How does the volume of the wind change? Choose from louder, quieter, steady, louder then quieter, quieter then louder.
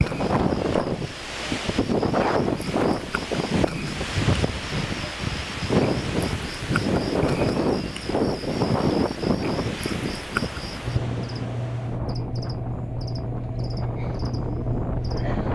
quieter.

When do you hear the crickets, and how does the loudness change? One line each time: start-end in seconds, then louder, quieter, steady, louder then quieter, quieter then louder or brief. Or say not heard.
0.0-15.5 louder.